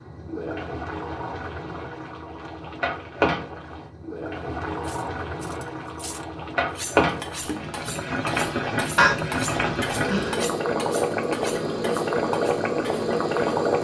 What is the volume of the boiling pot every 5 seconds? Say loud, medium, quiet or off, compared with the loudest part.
medium, loud, loud.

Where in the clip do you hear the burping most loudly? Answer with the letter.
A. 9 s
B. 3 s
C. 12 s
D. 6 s
A.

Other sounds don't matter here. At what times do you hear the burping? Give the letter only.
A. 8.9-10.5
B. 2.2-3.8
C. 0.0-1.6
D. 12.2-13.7
A.